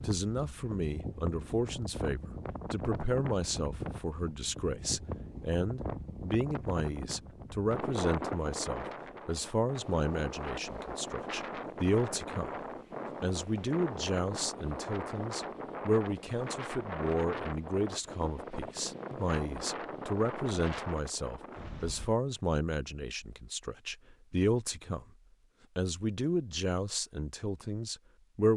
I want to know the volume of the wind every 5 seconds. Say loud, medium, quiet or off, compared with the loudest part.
loud, loud, loud, loud, loud, off.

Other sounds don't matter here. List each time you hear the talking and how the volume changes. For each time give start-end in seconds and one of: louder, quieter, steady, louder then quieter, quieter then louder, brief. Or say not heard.
0.0-12.5 steady
13.2-25.1 steady
25.8-28.5 brief.